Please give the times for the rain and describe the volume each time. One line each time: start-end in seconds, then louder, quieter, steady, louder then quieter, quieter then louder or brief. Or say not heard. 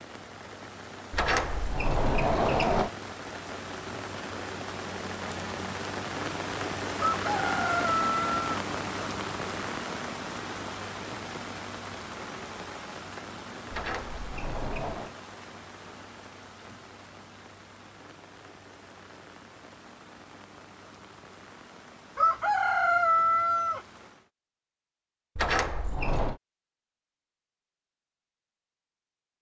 0.0-24.3 louder then quieter.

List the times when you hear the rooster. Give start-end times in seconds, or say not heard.
7.0-8.4, 22.1-23.8.